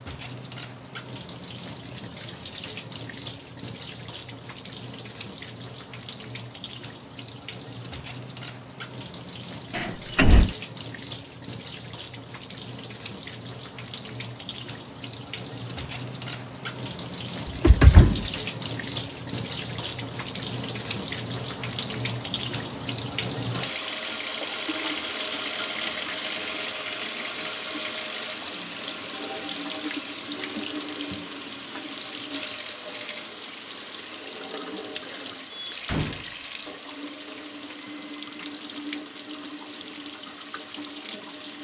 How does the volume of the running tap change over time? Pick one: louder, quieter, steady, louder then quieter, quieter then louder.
louder then quieter.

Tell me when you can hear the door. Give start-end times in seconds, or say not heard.
9.7-10.5, 17.4-18.3, 35.7-36.8.